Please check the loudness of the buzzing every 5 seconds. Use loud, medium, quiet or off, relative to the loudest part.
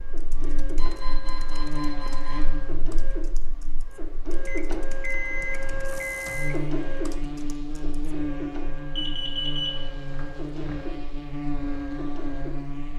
medium, loud, loud.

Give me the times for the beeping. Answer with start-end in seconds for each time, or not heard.
0.8-2.5, 4.5-6.5, 8.9-10.8.